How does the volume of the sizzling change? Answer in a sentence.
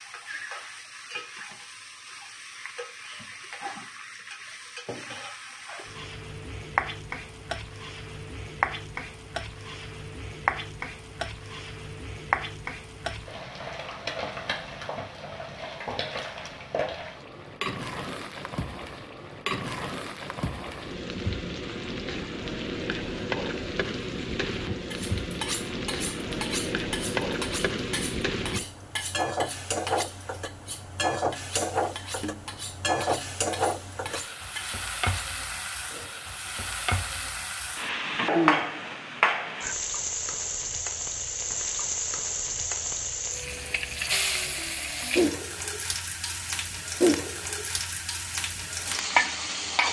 The volume of the sizzling goes up.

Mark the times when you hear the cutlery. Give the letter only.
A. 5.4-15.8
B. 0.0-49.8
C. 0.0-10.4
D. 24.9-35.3
D.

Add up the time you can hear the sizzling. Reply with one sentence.
The sizzling can be heard for 50 seconds in total.